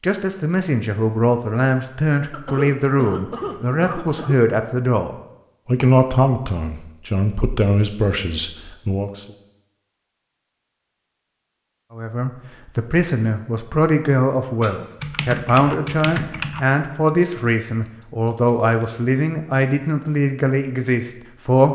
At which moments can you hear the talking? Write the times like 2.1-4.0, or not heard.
0.0-9.2, 11.9-21.6.